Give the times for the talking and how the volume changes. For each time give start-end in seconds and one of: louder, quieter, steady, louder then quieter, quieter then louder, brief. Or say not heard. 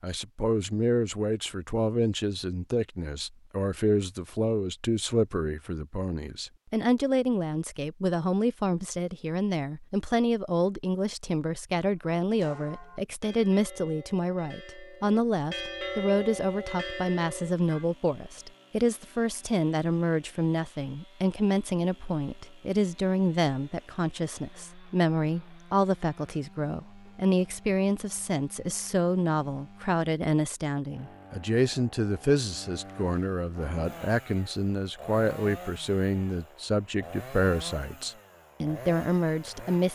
0.0-39.9 steady.